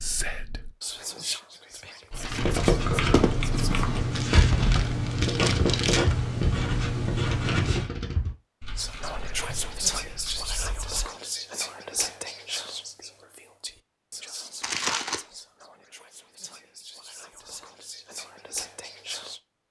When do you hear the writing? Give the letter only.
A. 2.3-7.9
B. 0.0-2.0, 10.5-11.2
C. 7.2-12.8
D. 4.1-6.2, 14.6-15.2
A.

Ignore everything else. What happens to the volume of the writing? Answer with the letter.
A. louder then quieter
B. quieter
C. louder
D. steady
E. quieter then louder
D.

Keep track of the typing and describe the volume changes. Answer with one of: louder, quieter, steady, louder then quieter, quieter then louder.
quieter.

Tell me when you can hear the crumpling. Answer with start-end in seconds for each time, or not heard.
4.1-6.2, 14.6-15.2.